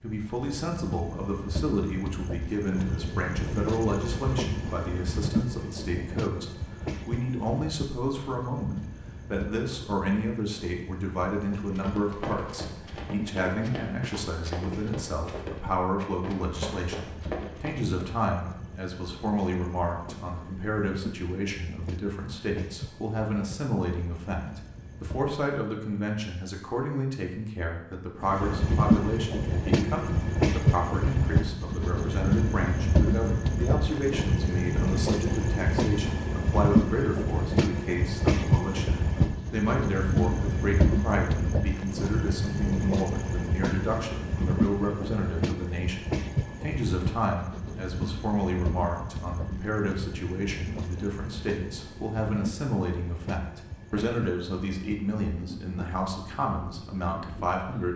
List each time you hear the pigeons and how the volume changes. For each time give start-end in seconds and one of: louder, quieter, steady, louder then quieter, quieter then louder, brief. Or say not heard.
not heard.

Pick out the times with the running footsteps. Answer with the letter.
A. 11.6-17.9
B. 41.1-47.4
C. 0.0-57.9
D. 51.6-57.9
A.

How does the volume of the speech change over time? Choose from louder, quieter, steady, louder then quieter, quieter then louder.
steady.